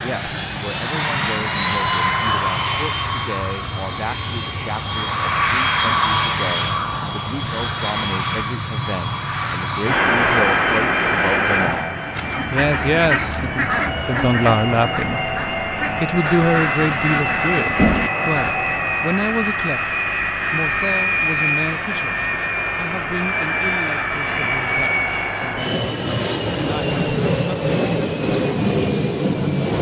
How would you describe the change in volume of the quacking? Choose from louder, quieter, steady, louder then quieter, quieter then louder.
quieter then louder.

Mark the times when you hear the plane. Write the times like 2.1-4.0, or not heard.
0.0-29.7.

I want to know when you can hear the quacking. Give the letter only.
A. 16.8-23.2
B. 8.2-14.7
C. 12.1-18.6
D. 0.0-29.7
C.